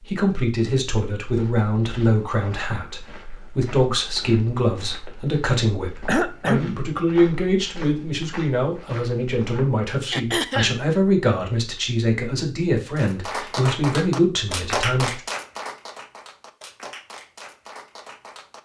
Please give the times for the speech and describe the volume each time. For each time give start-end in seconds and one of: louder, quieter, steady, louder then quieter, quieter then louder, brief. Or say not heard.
0.0-15.2 steady.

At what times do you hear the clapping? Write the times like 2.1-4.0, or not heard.
12.9-18.5.